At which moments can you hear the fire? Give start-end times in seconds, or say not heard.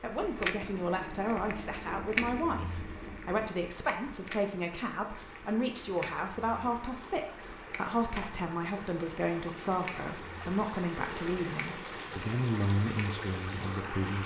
0.1-14.2.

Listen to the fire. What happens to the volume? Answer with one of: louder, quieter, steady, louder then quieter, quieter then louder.
quieter.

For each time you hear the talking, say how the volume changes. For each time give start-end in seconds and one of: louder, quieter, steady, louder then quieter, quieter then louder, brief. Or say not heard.
0.0-14.2 steady.